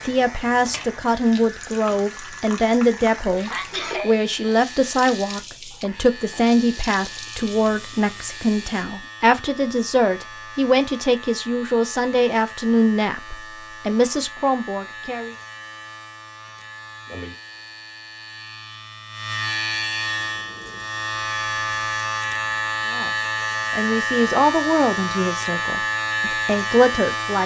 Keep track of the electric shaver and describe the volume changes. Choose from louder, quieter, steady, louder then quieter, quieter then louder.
louder.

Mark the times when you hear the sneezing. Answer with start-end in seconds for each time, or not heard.
3.5-4.2.